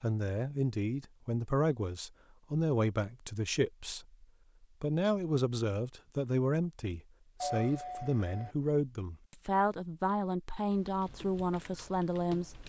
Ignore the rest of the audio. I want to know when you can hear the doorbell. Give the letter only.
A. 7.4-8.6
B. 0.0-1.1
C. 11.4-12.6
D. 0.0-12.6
A.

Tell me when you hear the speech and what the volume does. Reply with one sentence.
You can hear the speech from 0.0 to 12.6 s, at a steady volume.